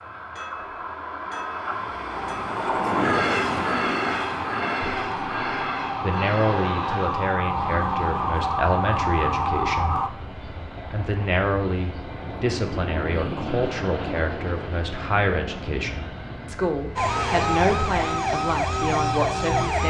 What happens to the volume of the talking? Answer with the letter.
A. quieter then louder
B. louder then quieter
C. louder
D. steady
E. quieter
D.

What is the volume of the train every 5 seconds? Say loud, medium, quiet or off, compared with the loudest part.
loud, medium, medium, medium.